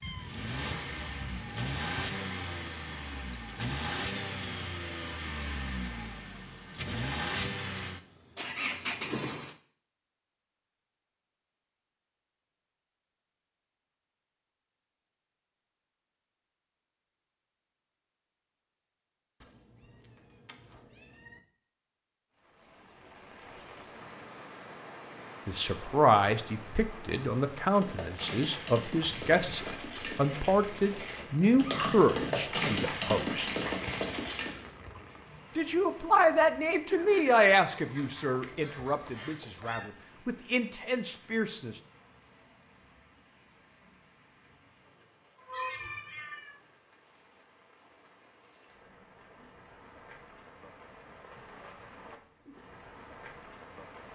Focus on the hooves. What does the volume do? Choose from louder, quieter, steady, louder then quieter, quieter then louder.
louder.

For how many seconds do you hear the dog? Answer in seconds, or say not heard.
not heard.